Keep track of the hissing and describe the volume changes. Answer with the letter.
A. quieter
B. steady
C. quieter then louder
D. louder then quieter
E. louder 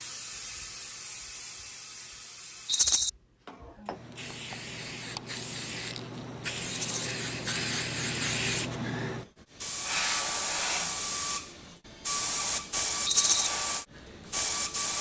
E.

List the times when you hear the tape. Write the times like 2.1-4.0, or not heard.
not heard.